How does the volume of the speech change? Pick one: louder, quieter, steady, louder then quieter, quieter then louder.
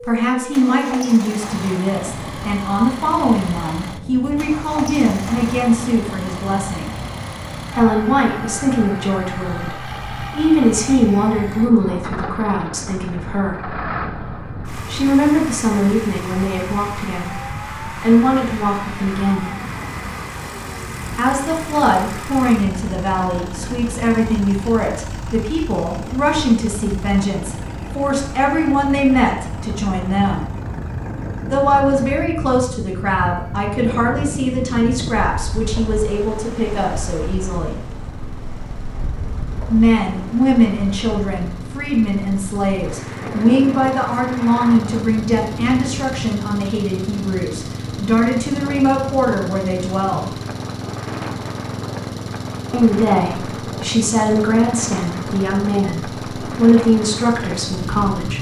steady.